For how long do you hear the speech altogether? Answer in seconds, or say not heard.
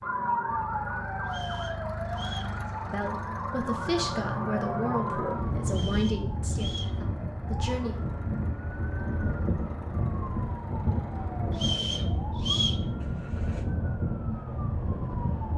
5 s.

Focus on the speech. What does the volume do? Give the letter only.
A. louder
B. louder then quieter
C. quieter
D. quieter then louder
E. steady
C.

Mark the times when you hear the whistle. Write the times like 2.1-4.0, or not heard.
1.2-2.5, 5.7-7.0, 11.5-12.8.